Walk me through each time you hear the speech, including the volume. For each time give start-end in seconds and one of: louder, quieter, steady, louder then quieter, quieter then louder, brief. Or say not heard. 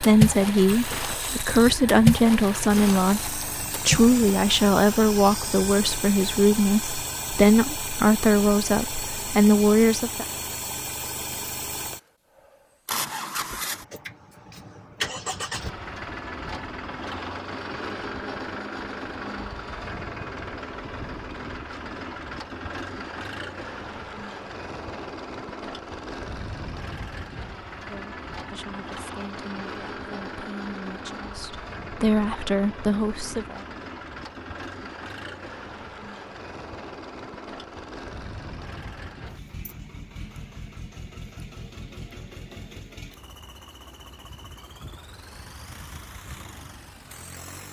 0.0-10.2 steady
27.7-33.6 louder.